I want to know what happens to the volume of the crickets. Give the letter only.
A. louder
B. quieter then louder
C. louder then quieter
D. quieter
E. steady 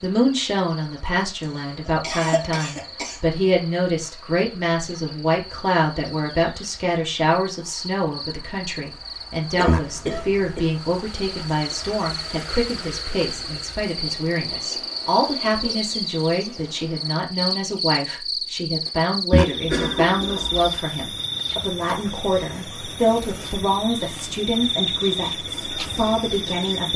A.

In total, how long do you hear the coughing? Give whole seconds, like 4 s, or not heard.
4 s.